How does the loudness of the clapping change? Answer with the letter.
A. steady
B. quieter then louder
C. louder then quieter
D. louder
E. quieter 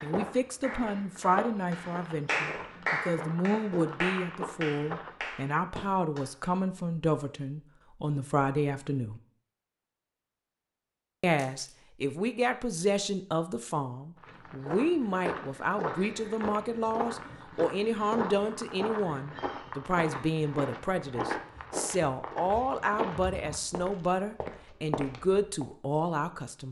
C.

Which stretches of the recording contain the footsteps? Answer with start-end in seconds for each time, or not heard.
0.0-5.2, 14.2-25.6.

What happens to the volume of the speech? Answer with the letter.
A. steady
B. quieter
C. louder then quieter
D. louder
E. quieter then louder
A.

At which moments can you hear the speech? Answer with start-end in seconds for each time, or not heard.
0.0-9.2, 11.2-26.6.